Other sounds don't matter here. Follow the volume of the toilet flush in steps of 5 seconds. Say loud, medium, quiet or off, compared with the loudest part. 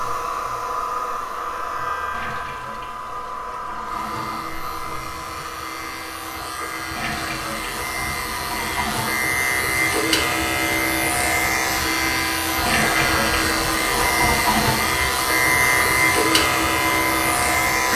quiet, medium, loud, off.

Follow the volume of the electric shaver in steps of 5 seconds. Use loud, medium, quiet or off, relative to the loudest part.
quiet, medium, loud, loud.